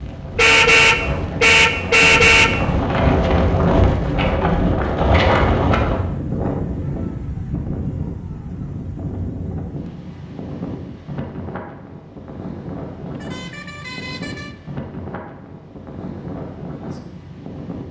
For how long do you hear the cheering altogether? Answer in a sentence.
You can't hear the cheering here.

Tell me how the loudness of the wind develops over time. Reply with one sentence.
The loudness of the wind goes down.